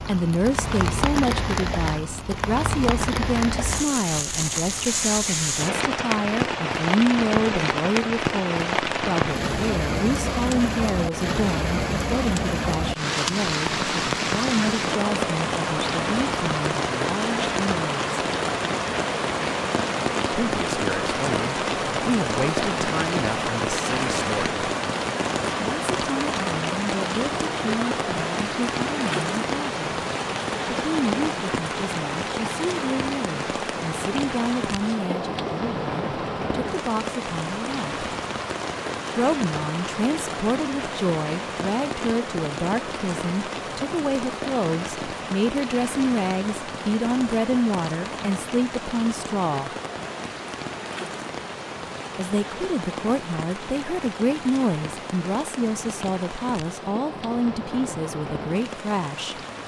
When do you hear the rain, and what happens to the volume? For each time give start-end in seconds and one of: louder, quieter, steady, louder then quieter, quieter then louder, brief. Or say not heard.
0.0-59.6 quieter.